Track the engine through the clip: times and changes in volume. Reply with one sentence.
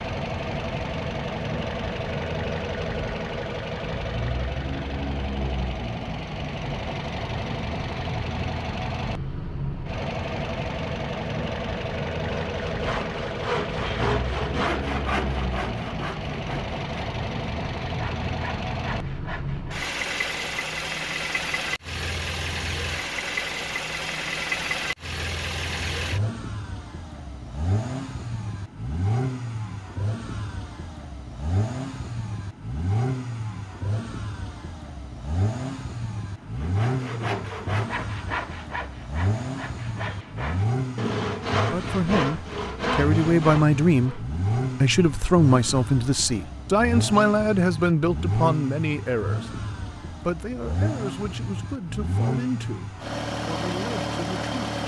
You can hear the engine from 0.0 to 54.8 s, at a steady volume.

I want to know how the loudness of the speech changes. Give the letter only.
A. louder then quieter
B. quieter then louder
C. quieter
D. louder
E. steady
C.